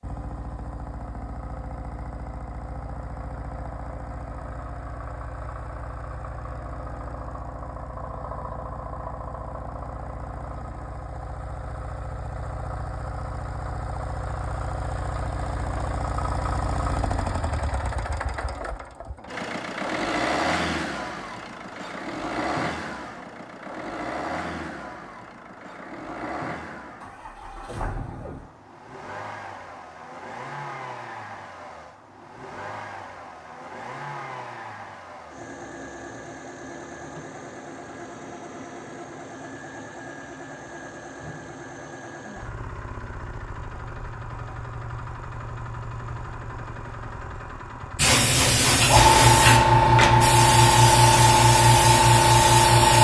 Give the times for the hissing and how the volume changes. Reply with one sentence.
You can hear the hissing from 48.0 to 52.9 s, at a steady volume.